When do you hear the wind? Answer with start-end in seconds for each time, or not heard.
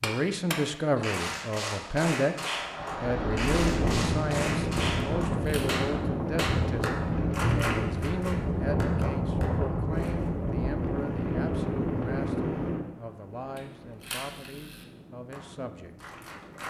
2.5-16.6.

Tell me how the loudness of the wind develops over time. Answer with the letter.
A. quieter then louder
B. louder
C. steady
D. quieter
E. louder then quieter
D.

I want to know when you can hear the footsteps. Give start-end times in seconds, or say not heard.
not heard.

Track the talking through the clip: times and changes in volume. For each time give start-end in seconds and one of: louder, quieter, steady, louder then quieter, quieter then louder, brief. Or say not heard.
0.0-16.1 quieter.